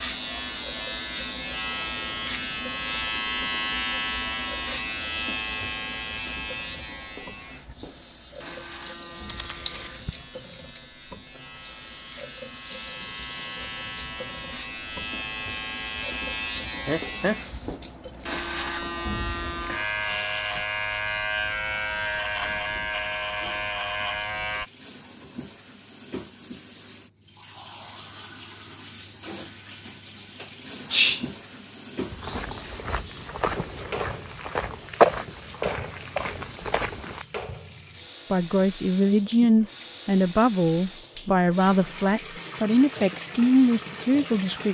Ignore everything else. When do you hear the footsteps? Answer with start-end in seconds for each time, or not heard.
32.1-37.2.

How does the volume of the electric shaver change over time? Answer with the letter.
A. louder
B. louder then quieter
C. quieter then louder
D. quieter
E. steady
C.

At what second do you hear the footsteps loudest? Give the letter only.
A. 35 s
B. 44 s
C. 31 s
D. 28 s
A.